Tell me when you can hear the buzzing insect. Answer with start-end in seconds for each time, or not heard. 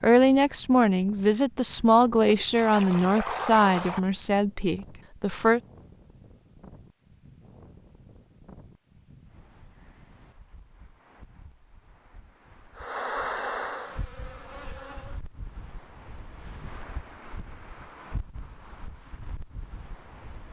12.8-15.2.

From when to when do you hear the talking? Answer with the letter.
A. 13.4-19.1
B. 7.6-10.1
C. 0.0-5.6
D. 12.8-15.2
C.